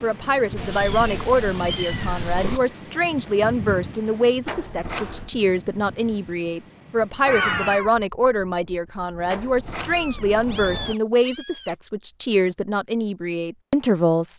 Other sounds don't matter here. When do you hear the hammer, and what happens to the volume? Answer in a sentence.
You can't hear the hammer here.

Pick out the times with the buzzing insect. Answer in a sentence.
You can't hear the buzzing insect here.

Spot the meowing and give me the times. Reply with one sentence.
You can hear the meowing from 0.6 to 2.6 s, from 7.2 to 8.0 s and from 9.9 to 11.8 s.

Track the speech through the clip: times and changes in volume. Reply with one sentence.
You can hear the speech from 0.0 to 14.3 s, at a steady volume.